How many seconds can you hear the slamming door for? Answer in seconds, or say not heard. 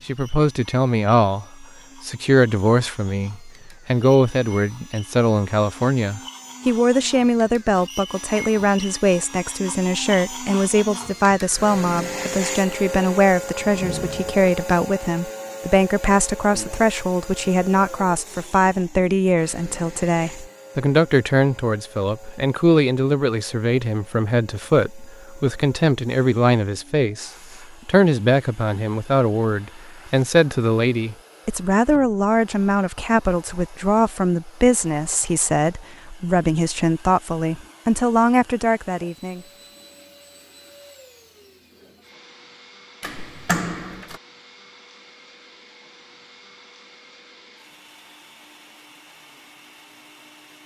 2 s.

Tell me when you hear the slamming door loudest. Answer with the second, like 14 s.
44 s.